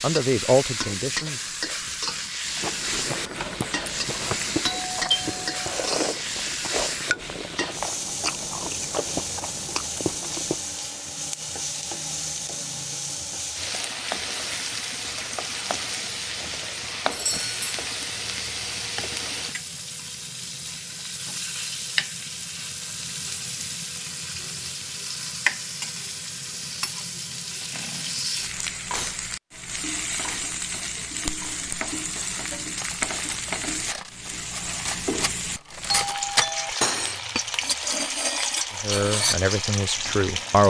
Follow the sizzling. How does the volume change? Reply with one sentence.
The volume of the sizzling stays about the same.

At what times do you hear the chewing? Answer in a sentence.
The chewing can be heard from 2.5 to 10.6 s.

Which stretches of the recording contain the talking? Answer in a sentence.
You can hear the talking from 0.0 to 1.4 s and from 38.8 to 40.6 s.